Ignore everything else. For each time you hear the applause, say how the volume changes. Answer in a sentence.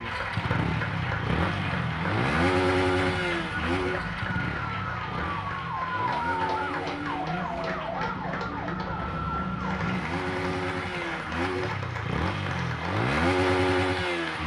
You can hear the applause from 0.0 to 14.4 s, at a steady volume.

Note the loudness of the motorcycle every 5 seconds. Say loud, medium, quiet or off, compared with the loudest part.
loud, medium, loud.